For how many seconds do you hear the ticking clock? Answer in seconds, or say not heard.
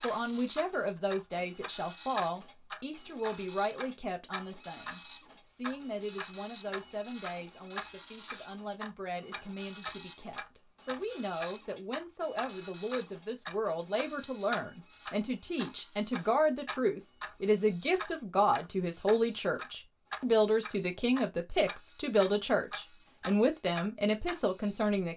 25 s.